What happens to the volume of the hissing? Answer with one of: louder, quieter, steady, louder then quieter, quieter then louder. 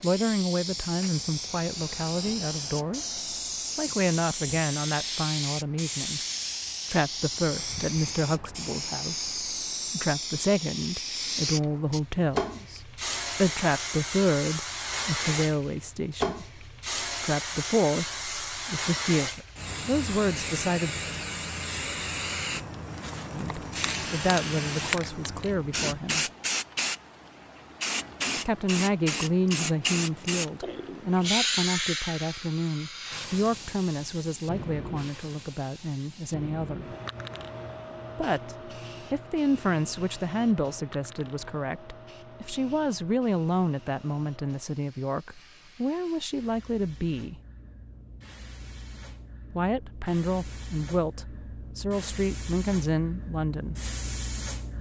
quieter.